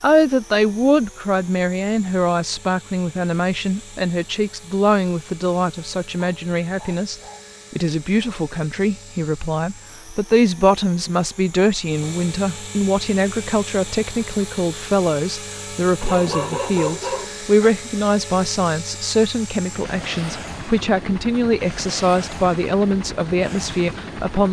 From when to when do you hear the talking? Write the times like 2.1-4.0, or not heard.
0.0-24.4.